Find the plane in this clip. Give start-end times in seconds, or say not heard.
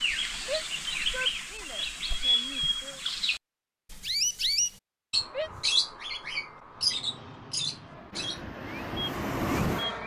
6.7-10.0.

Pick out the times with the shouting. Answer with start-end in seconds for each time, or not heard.
0.4-3.0, 5.2-5.7.